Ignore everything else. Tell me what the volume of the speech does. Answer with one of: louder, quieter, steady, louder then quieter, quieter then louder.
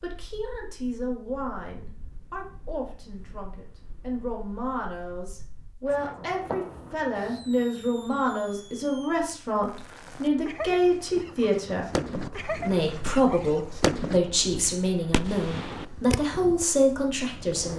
louder.